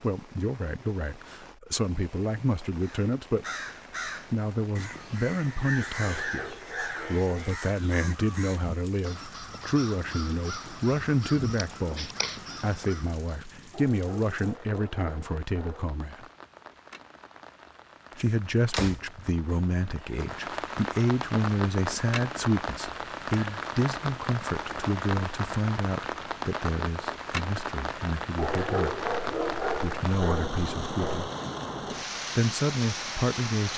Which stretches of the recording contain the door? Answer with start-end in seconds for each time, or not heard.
18.2-20.1.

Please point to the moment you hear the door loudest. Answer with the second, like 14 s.
19 s.